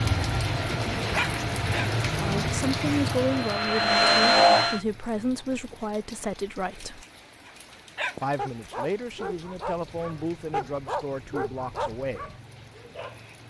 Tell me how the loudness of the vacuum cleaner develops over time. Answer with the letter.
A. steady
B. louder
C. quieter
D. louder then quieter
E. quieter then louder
B.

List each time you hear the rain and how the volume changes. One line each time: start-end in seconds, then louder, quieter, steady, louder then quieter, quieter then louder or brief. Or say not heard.
0.0-13.4 quieter.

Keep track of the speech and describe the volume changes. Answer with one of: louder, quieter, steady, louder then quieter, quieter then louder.
quieter.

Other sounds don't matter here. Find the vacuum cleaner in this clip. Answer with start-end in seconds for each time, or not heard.
0.0-4.8.